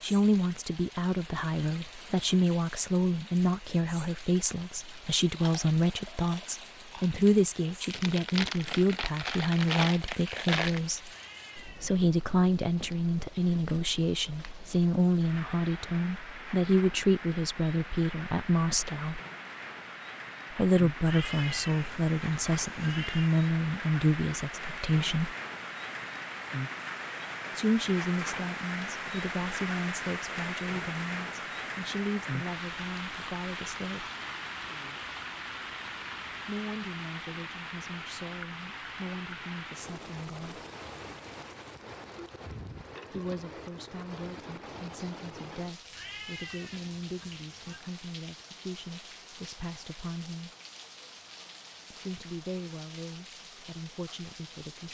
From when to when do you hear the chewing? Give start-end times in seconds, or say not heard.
5.3-10.8.